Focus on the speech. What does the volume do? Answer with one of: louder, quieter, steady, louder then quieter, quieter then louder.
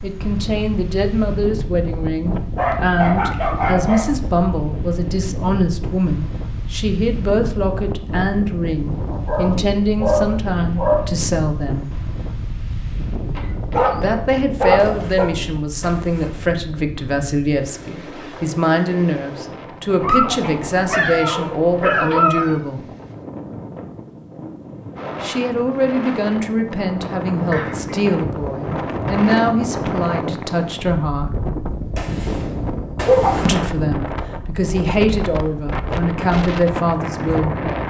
steady.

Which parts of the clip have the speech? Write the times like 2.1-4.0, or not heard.
0.0-11.9, 13.9-22.9, 25.2-31.4, 33.5-37.7.